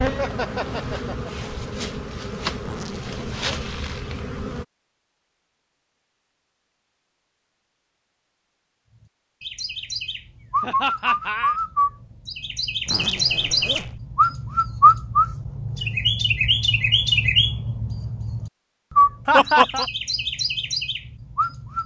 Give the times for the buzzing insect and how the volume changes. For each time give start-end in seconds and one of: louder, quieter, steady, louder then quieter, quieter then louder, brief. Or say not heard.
0.0-4.7 steady.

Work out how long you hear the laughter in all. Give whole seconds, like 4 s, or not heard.
3 s.